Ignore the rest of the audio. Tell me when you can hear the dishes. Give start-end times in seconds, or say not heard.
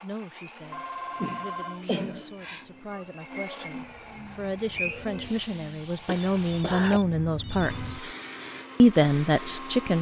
not heard.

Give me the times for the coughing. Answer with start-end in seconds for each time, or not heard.
1.2-2.2, 6.0-7.0.